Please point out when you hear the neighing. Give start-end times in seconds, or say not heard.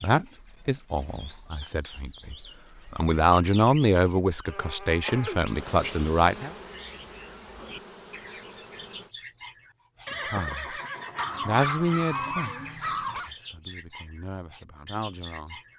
10.1-12.5.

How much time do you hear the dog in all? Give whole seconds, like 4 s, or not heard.
2 s.